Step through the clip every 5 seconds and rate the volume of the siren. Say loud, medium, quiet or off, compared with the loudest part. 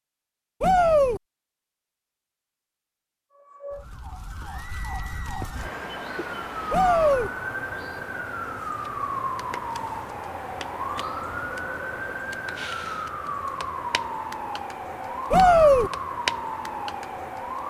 medium, loud, loud, loud.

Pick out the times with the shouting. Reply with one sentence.
You can hear the shouting from 0.6 to 1.2 s, from 6.7 to 7.3 s and from 15.3 to 15.9 s.